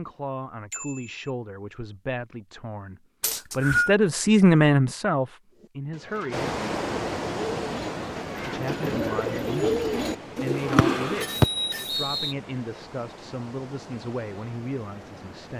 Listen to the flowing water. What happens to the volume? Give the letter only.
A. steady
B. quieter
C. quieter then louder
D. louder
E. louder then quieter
B.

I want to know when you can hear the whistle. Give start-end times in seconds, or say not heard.
3.2-4.0, 10.8-12.3.